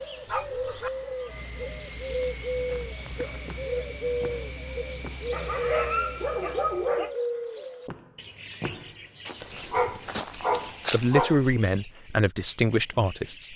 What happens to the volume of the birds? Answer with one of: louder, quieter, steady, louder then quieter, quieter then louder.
quieter.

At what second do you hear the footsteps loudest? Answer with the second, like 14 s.
11 s.